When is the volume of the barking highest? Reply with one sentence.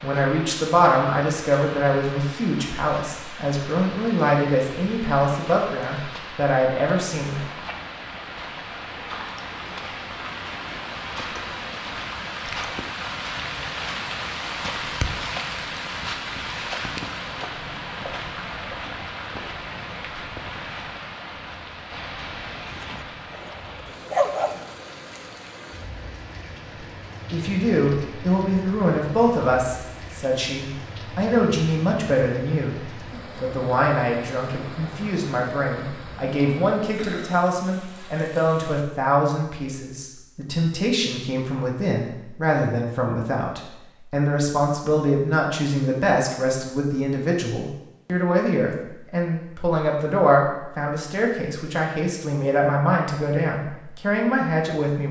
The volume of the barking peaks at 24 seconds.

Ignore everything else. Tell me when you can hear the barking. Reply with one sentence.
You can hear the barking from 22.6 to 24.6 s.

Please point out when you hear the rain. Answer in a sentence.
You can hear the rain from 0.0 to 38.9 s.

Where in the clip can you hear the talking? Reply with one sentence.
You can hear the talking from 0.0 to 7.5 s and from 27.3 to 55.0 s.